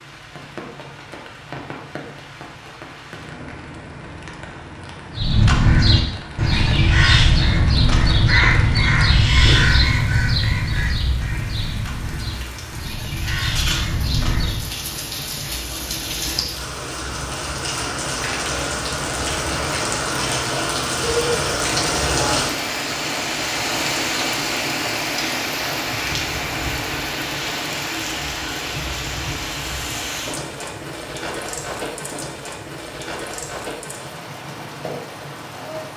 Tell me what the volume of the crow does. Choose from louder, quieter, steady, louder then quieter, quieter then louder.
quieter.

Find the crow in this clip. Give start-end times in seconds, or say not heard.
5.1-14.7.